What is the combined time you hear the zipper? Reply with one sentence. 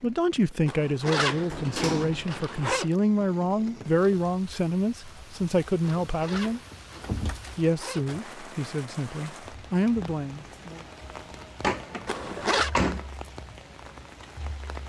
The zipper can be heard for 5 seconds in total.